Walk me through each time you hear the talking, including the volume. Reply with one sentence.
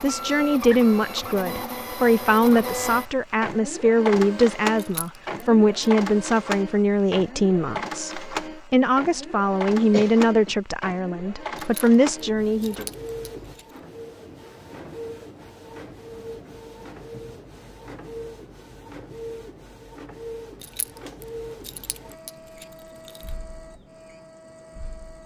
You can hear the talking from 0.0 to 12.8 s, at a steady volume.